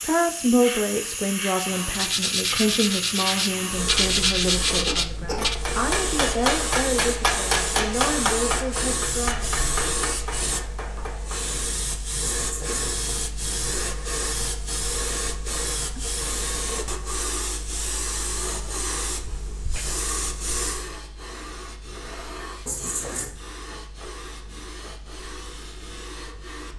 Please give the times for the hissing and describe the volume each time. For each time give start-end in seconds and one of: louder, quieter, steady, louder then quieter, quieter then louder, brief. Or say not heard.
0.0-26.7 quieter.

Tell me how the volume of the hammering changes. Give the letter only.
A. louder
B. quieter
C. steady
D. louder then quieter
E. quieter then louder
B.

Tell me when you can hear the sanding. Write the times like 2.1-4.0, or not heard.
1.9-5.5.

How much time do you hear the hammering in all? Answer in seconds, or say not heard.
6 s.